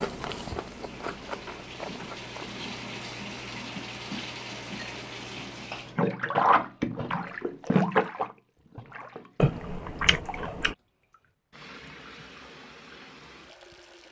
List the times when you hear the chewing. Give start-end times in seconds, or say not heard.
0.0-2.6, 9.3-10.8.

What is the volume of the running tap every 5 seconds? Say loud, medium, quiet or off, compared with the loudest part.
medium, loud, quiet.